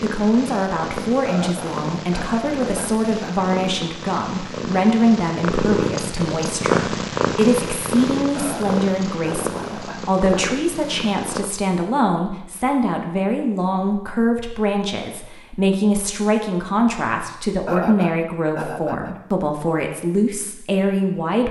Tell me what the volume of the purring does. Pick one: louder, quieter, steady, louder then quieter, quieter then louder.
louder then quieter.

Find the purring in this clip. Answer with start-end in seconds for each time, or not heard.
0.0-11.5.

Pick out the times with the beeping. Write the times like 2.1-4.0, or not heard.
not heard.